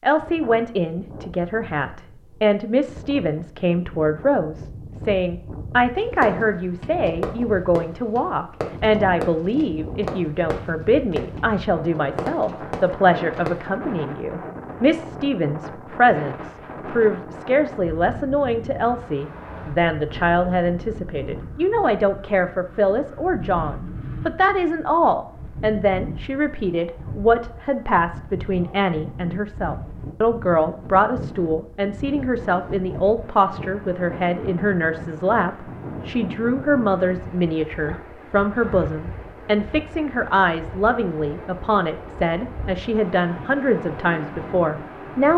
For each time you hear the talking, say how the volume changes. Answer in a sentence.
The talking can be heard from 0.0 to 45.3 s, at a steady volume.